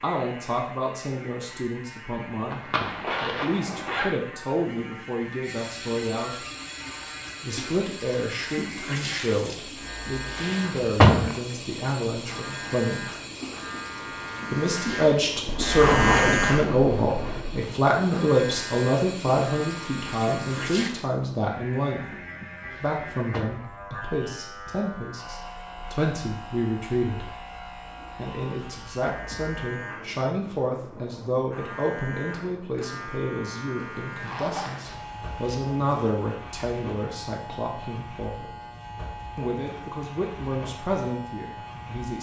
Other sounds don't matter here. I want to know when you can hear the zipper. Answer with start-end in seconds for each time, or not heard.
2.5-4.0, 15.4-17.4, 33.8-35.6.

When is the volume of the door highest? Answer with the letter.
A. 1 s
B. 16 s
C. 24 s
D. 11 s
D.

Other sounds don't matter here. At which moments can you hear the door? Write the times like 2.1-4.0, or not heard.
10.3-11.3, 22.7-23.7.